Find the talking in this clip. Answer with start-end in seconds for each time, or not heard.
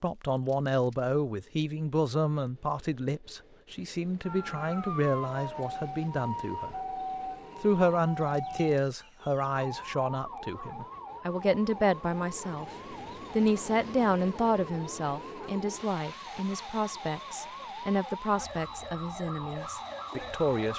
0.0-6.8, 7.6-12.7, 13.3-20.7.